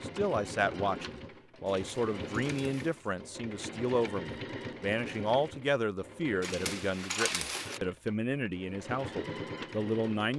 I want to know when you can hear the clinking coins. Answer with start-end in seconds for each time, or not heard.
1.6-3.1, 6.4-7.8.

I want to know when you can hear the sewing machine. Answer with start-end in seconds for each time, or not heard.
0.0-10.3.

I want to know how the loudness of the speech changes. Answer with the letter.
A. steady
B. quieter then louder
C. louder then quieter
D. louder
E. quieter
A.